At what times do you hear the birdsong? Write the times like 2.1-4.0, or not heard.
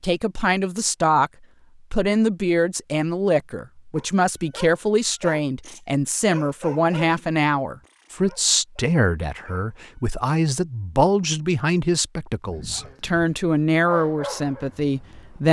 not heard.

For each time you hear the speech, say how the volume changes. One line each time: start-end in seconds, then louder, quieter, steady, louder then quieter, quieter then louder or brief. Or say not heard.
0.0-1.3 brief
1.9-15.4 steady.